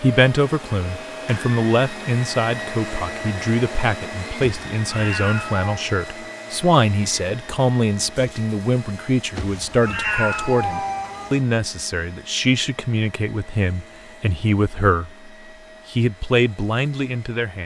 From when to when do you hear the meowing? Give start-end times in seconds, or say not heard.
4.4-5.7, 9.3-11.4.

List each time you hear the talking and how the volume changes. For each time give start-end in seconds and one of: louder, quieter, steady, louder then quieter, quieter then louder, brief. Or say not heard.
0.0-15.3 steady
15.9-17.6 brief.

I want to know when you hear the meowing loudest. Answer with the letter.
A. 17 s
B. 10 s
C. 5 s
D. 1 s
B.